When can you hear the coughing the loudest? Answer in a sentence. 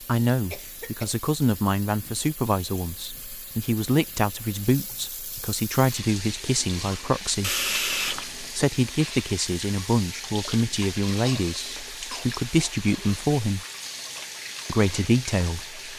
The volume of the coughing peaks at 8 seconds.